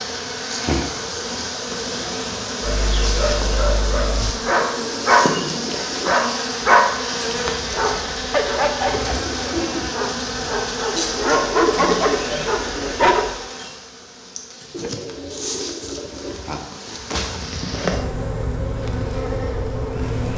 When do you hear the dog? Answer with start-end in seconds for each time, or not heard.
2.6-13.3.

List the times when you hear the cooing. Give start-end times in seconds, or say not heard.
4.5-6.2, 14.7-16.4.